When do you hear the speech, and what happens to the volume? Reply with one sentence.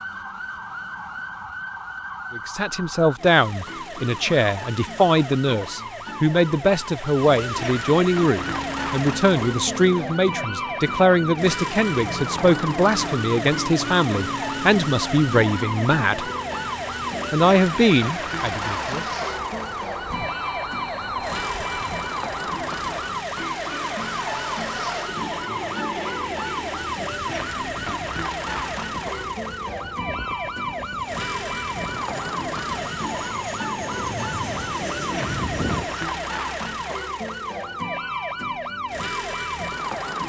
You can hear the speech from 2.3 to 16.3 s, at a steady volume; and briefly from 17.3 to 19.1 s.